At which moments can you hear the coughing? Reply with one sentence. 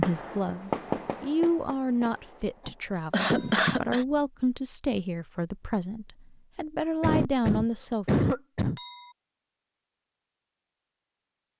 The coughing can be heard from 2.6 to 4.0 s and from 7.0 to 8.8 s.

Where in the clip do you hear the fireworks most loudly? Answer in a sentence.
The loudest moment of the fireworks is at 1 second.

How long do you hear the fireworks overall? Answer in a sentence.
You can hear the fireworks for 3 seconds altogether.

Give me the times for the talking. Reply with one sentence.
You can hear the talking from 0.0 to 8.2 s.